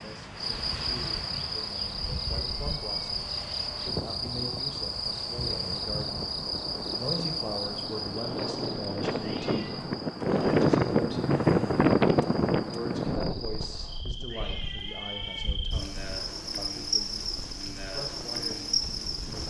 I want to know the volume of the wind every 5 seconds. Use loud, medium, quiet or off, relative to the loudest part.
quiet, medium, loud, quiet.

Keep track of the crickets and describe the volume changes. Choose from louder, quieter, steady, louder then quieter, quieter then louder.
quieter then louder.